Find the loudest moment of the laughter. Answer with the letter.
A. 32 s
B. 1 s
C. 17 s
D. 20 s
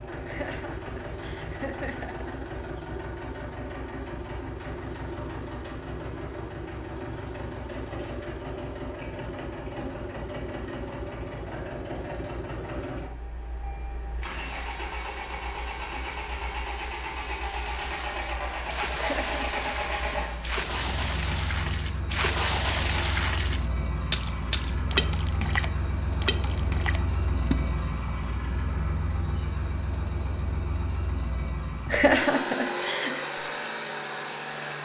A.